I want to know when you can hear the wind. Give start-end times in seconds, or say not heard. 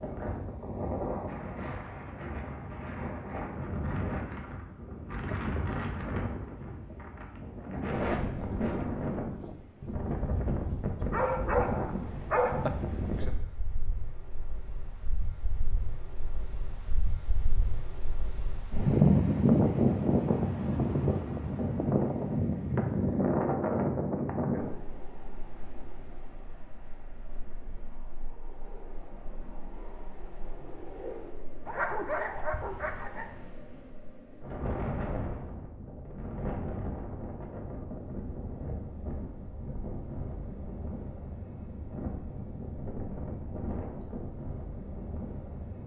0.0-45.8.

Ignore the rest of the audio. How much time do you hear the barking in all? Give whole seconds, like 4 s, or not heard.
3 s.